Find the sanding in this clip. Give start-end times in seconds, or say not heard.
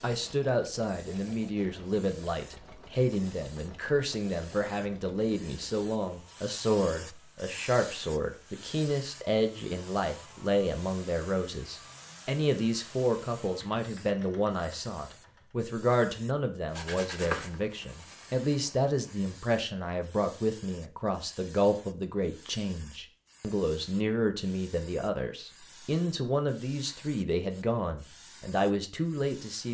16.7-19.4.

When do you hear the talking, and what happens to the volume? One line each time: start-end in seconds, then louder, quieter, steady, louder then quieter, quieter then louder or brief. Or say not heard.
0.0-29.7 steady.